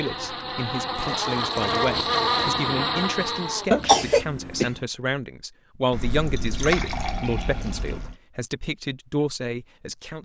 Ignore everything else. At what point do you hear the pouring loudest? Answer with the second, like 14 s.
7 s.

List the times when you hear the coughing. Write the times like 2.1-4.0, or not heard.
3.7-4.7.